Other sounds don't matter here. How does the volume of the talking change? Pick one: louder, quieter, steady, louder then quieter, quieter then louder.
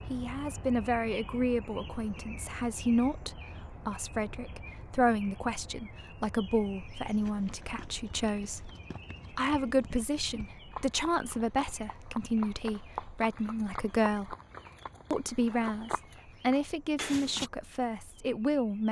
steady.